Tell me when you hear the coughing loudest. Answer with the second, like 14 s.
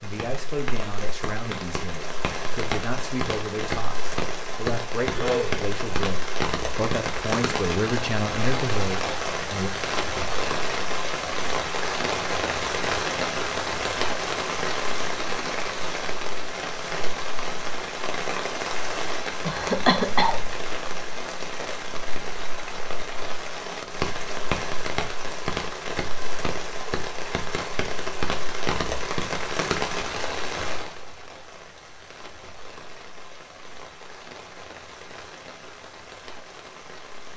20 s.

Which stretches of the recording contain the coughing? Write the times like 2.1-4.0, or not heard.
5.1-5.5, 19.4-20.4.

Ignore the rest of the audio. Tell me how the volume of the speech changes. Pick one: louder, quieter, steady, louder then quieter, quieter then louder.
louder.